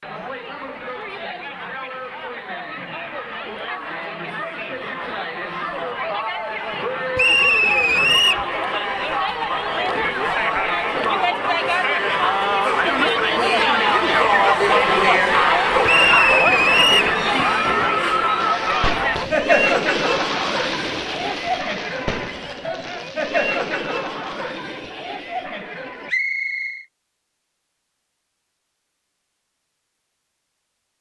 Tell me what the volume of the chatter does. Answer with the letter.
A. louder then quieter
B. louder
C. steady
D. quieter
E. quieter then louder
A.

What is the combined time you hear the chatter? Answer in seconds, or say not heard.
26 s.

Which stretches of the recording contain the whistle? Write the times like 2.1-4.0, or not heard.
7.2-8.4, 15.8-17.1, 26.1-26.9.